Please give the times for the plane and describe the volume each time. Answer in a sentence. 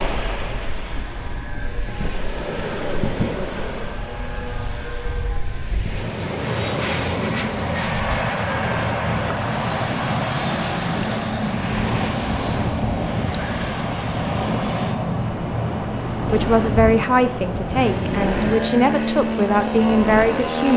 You can hear the plane from 0.2 to 20.7 s, getting louder.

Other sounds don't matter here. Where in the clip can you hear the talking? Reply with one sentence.
You can hear the talking from 16.3 to 20.7 s.